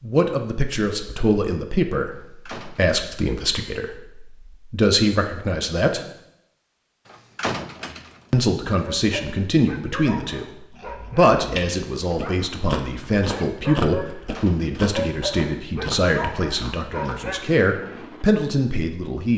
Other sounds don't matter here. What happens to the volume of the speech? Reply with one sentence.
The loudness of the speech stays about the same.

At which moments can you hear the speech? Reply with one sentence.
The speech can be heard from 0.0 to 6.0 s and from 8.3 to 19.3 s.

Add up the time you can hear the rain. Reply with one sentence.
You can't hear the rain here.